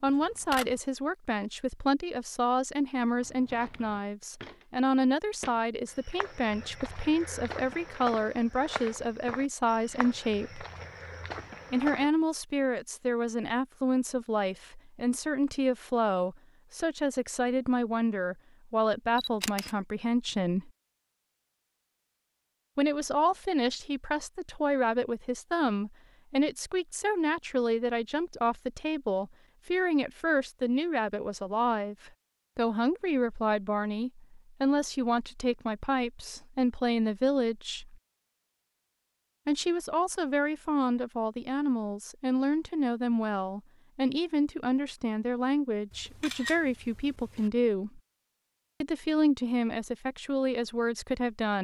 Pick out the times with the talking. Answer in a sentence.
The talking can be heard from 0.0 to 10.7 s, from 11.7 to 20.7 s, from 22.8 to 38.0 s, from 39.5 to 48.0 s and from 48.8 to 51.6 s.